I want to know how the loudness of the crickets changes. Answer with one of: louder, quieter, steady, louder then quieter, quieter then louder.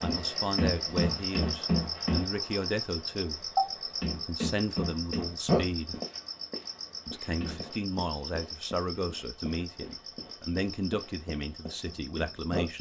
quieter.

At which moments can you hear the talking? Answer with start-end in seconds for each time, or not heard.
0.0-3.5, 4.2-6.0, 7.0-12.7.